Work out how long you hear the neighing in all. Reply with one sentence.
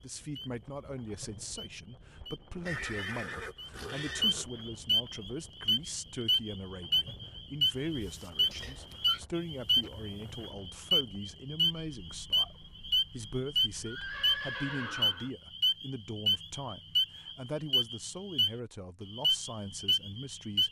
You can hear the neighing for 5 seconds altogether.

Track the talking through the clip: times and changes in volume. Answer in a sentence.
The talking can be heard from 0.0 to 20.6 s, at a steady volume.